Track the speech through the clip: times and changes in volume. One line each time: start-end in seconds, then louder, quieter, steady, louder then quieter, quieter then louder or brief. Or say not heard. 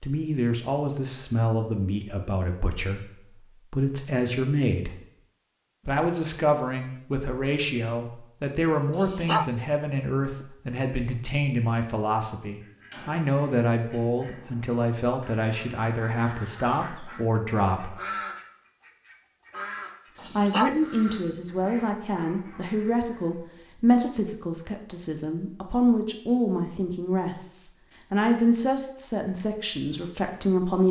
0.0-4.9 quieter then louder
5.8-17.9 steady
20.4-30.8 steady.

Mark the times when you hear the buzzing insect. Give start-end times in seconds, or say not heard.
not heard.